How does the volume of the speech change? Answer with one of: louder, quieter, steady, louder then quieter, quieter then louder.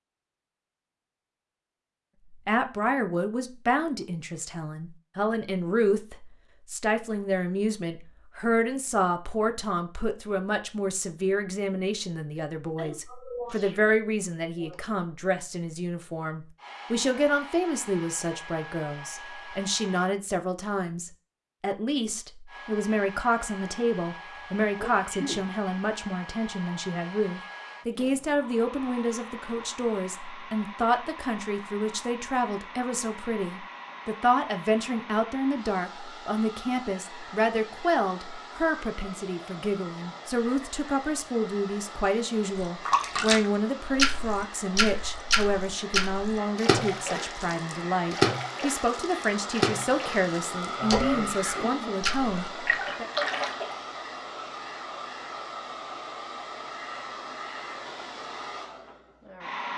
steady.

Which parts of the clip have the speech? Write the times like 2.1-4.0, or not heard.
2.5-53.0.